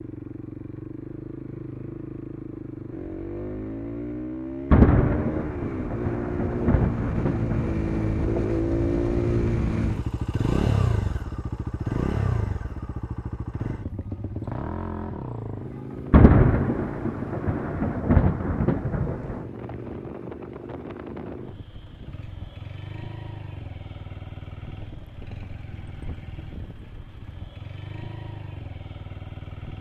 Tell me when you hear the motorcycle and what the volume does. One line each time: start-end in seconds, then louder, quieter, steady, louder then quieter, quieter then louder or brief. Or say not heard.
0.0-29.7 louder then quieter.